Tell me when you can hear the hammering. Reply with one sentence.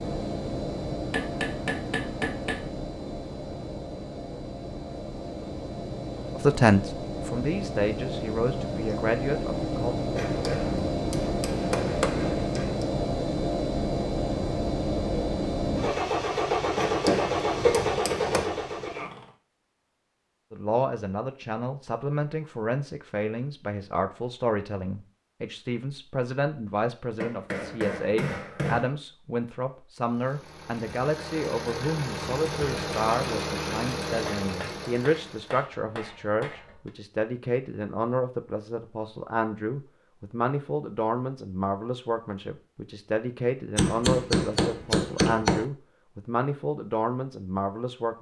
The hammering can be heard from 1.1 to 2.7 s, from 10.2 to 12.8 s, from 16.8 to 18.5 s, from 27.2 to 28.9 s, from 34.2 to 36.9 s and from 43.8 to 45.6 s.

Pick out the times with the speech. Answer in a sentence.
The speech can be heard from 6.3 to 9.9 s and from 20.5 to 48.1 s.